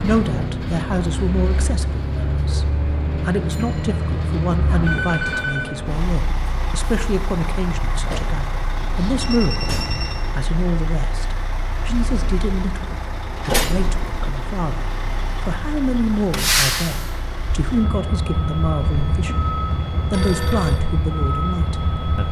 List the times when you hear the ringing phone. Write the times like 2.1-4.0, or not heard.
4.8-5.8, 8.8-10.2, 18.9-20.8.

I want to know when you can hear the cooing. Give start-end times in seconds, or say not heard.
not heard.